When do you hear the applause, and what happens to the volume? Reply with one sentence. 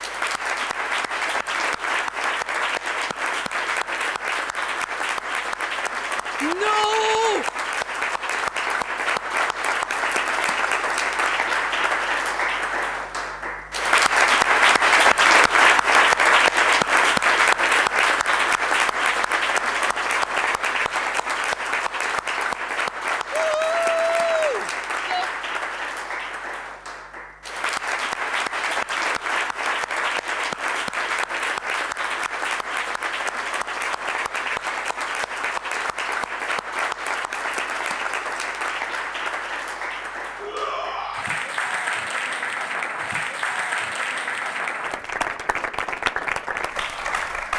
You can hear the applause from 0.0 to 47.5 s, getting louder then quieter.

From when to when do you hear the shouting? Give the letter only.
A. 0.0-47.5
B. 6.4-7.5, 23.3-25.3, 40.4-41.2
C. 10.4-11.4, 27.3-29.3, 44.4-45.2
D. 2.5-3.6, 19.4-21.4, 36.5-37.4
B.